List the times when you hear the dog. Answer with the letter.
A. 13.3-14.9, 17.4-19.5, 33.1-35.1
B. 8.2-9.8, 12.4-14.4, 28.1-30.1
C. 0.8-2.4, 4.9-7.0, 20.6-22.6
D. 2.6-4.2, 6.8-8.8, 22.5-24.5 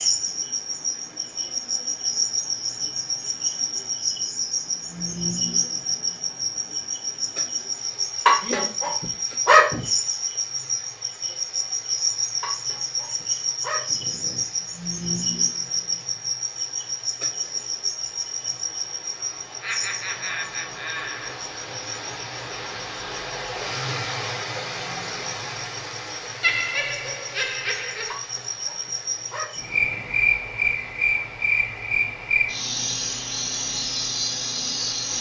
B.